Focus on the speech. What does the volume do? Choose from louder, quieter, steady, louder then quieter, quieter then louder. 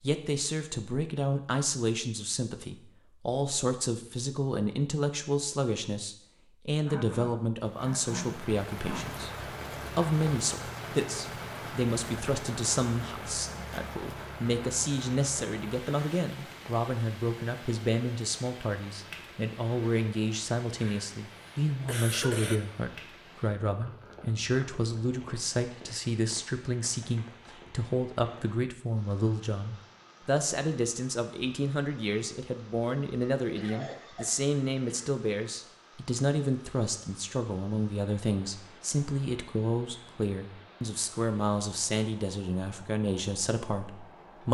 steady.